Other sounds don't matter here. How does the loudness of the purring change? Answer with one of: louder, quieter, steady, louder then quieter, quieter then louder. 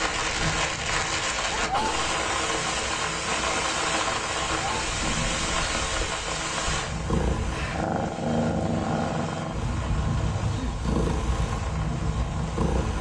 louder.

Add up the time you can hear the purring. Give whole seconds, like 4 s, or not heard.
13 s.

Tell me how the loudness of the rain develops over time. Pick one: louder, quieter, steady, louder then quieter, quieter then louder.
quieter.